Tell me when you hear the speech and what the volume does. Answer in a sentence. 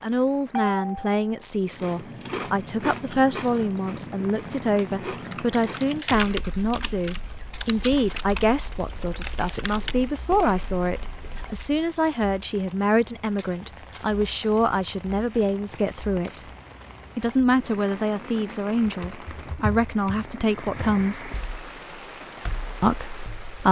You can hear the speech from 0.0 to 16.4 s, at a steady volume; from 17.1 to 21.3 s, getting quieter then louder; and briefly from 22.8 to 23.6 s.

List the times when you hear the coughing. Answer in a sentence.
The coughing can't be heard in this clip.